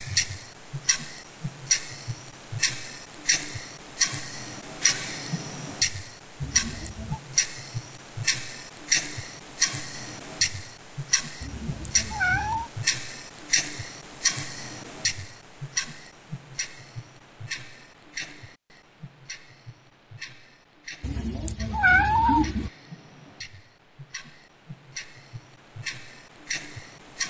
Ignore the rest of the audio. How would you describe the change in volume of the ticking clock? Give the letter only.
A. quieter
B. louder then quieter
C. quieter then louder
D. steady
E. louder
A.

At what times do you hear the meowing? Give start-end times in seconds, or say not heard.
6.4-7.2, 11.4-12.7, 21.0-22.7.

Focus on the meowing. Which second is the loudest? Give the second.
22 s.